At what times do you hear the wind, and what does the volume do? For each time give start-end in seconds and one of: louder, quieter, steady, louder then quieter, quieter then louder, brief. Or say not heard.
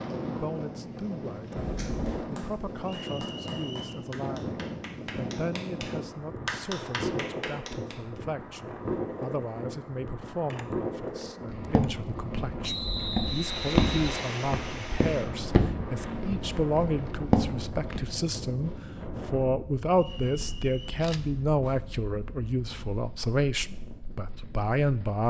0.0-25.2 quieter.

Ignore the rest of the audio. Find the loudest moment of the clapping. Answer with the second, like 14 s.
7 s.